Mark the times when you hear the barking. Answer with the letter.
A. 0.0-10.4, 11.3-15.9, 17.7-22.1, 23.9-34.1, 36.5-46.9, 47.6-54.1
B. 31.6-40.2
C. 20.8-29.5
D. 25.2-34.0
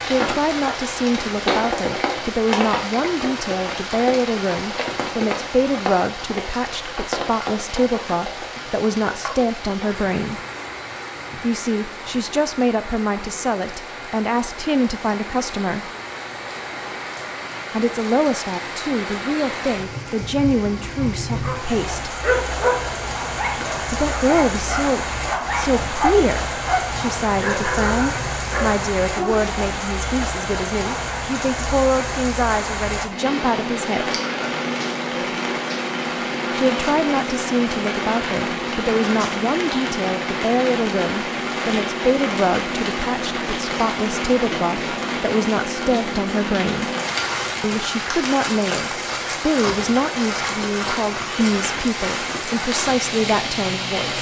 C.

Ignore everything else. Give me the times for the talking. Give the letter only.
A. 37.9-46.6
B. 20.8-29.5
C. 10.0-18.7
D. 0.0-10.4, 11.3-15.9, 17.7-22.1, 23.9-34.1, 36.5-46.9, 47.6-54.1
D.